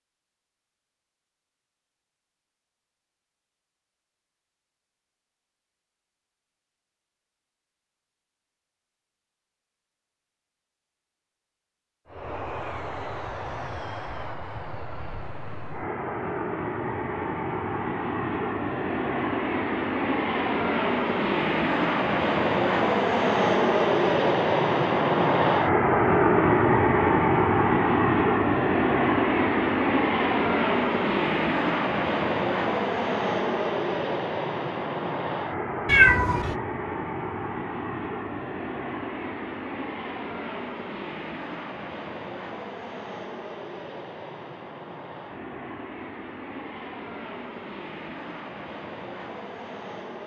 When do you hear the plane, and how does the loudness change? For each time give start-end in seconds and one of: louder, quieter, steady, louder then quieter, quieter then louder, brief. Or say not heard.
12.1-50.2 louder then quieter.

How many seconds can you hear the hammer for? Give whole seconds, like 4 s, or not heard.
not heard.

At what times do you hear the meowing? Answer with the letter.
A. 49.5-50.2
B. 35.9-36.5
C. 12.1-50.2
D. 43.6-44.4
B.